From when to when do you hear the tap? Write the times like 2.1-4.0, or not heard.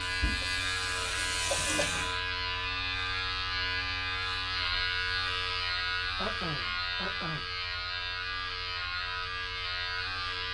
0.0-2.1.